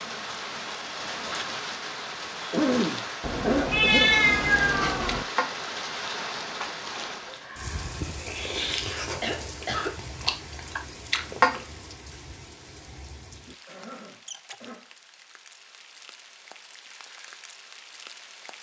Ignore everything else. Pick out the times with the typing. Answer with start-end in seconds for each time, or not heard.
not heard.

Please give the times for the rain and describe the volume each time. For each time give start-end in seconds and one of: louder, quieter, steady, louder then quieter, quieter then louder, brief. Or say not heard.
0.0-18.5 quieter.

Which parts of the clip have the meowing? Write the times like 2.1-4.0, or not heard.
3.2-5.2.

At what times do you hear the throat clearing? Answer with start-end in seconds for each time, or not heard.
2.5-4.1, 9.2-10.2, 13.5-14.8.